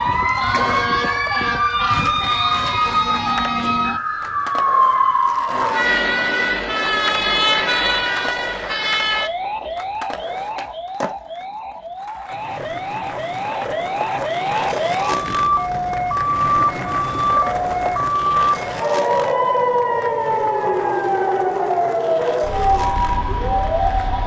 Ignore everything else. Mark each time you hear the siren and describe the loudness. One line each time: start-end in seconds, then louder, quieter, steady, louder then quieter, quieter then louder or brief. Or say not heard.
0.0-24.2 quieter then louder.